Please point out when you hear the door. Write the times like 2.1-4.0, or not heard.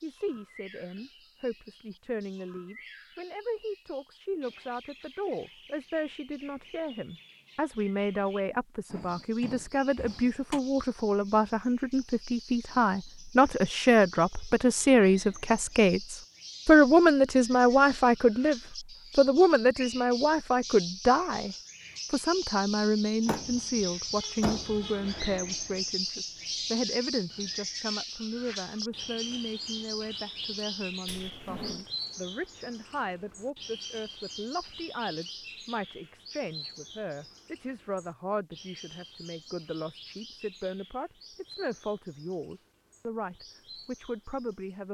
8.9-10.6, 23.2-24.9, 31.1-31.9.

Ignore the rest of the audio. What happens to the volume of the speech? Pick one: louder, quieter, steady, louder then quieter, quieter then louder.
louder then quieter.